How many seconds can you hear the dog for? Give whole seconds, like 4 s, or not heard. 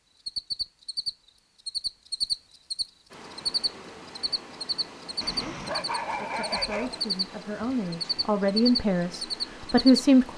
2 s.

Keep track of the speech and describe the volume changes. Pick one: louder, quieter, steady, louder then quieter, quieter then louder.
louder.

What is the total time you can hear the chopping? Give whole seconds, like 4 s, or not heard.
not heard.